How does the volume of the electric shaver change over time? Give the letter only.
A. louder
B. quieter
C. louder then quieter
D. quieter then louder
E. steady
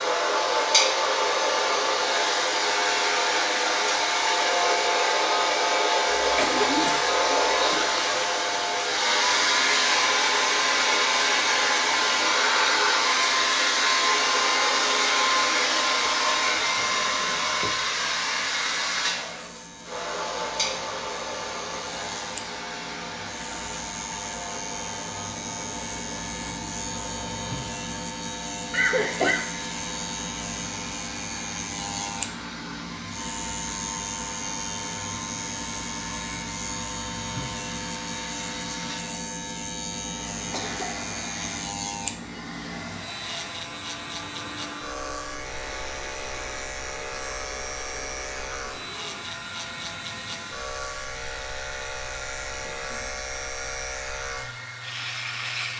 A.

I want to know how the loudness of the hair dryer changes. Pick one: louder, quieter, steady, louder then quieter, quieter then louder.
quieter.